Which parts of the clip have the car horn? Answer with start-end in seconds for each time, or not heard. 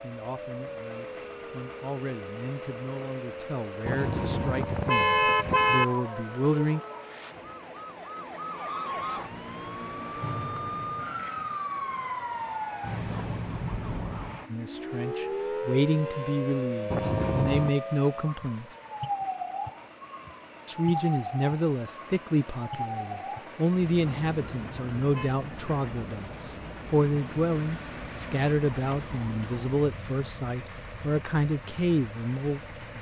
3.9-5.8, 16.9-17.8, 24.2-25.3.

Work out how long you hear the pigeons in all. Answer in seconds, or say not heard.
not heard.